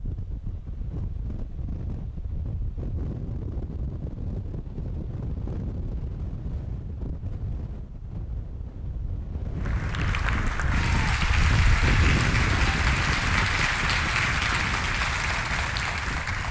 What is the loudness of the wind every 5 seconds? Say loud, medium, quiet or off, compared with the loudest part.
medium, medium, loud, medium.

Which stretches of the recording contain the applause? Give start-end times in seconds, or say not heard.
9.6-16.4.